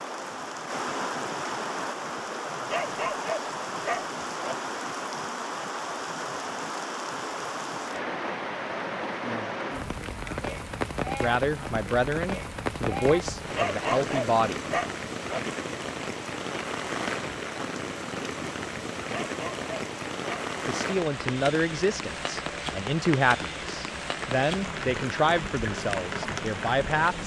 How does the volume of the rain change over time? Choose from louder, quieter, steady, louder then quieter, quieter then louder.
steady.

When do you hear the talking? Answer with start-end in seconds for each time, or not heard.
11.2-14.6, 20.6-27.2.